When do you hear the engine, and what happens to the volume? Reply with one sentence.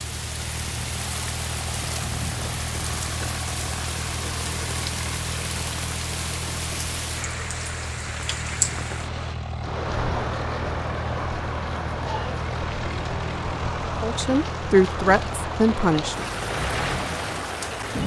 You can hear the engine from 0.0 to 18.0 s, at a steady volume.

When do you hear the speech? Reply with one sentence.
You can hear the speech from 14.0 to 16.2 s.